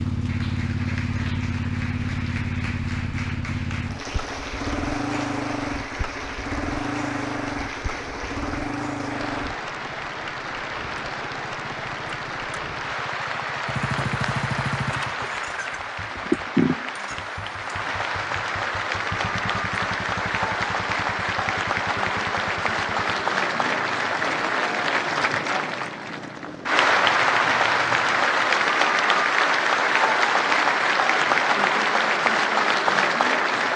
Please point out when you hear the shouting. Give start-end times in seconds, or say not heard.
not heard.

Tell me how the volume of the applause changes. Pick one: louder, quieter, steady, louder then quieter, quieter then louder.
louder.